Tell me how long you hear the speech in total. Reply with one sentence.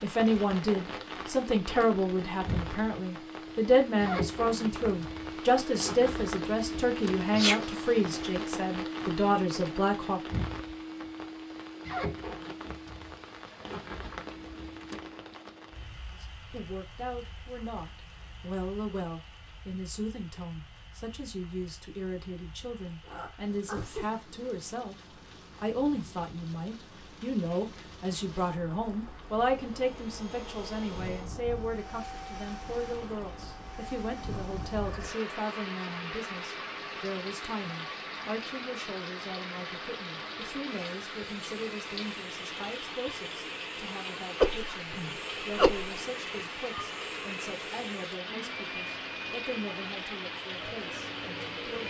You can hear the speech for 46 seconds altogether.